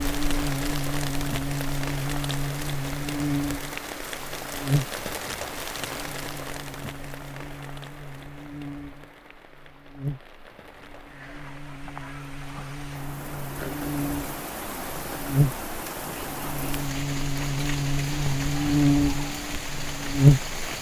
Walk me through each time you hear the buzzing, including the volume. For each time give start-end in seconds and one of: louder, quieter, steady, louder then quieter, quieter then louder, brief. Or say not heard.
0.0-20.6 quieter then louder.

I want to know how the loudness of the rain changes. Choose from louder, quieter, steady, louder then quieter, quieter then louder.
quieter then louder.